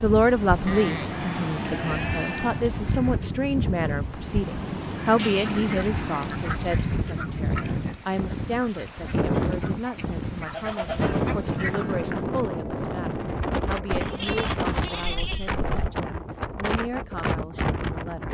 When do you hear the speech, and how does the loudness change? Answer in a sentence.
You can hear the speech from 0.0 to 18.3 s, getting quieter.